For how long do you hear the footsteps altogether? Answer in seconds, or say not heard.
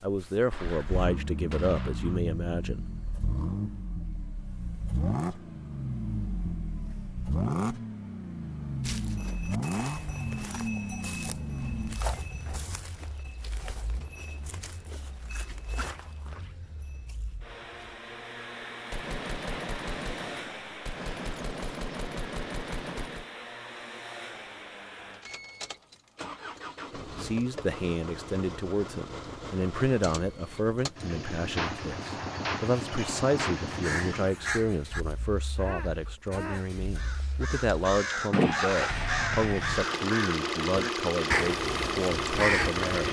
9 s.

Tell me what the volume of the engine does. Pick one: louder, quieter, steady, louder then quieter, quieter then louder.
quieter then louder.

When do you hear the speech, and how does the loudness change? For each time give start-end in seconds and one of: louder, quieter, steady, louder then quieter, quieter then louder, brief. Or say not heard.
0.0-2.8 brief
27.1-43.0 steady.